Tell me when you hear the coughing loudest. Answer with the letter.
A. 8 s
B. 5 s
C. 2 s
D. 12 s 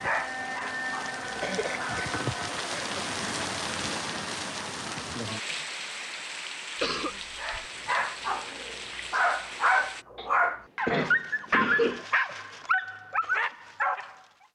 D.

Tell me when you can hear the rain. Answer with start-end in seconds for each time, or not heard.
0.0-10.1.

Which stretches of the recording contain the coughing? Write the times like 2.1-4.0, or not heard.
1.4-3.4, 6.8-7.7, 10.2-12.1.